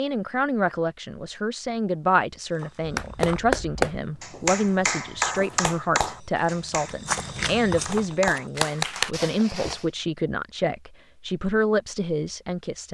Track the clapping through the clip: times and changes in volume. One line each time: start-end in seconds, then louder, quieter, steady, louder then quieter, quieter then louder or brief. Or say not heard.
2.8-9.1 quieter then louder.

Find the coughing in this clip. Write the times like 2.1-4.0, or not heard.
9.1-9.9.